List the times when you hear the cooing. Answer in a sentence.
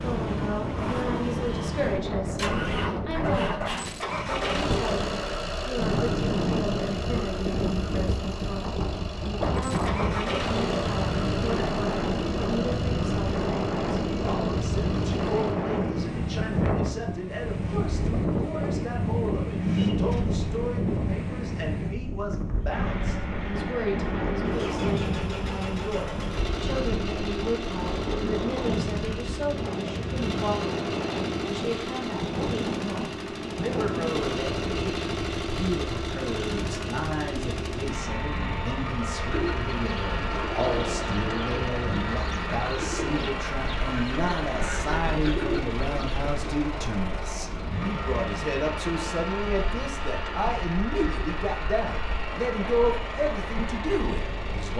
You can hear the cooing from 39.2 to 46.5 s.